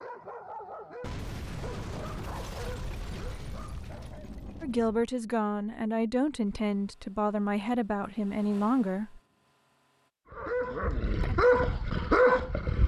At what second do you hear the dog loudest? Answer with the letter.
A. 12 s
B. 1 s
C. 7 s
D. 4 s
A.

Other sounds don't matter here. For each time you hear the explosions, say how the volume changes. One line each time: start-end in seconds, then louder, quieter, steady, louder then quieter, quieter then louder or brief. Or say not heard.
1.0-5.0 quieter.